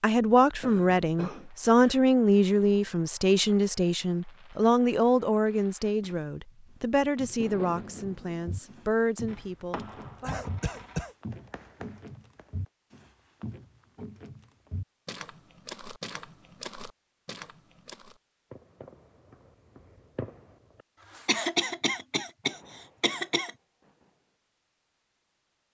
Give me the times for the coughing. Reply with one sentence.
You can hear the coughing from 0.6 to 2.0 s, from 10.2 to 11.2 s and from 21.2 to 23.5 s.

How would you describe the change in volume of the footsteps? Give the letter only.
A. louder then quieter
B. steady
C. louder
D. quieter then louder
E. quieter
B.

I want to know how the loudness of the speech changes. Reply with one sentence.
The loudness of the speech goes down.